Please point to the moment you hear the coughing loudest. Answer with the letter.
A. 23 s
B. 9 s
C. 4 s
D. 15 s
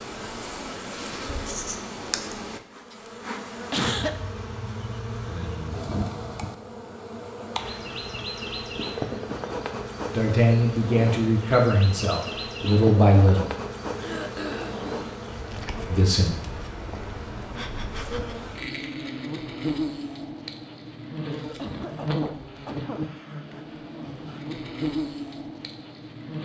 C.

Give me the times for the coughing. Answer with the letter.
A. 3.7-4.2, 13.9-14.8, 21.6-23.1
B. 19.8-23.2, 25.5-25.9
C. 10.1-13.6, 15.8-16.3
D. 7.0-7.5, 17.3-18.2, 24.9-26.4
A.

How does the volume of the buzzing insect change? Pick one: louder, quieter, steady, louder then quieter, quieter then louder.
steady.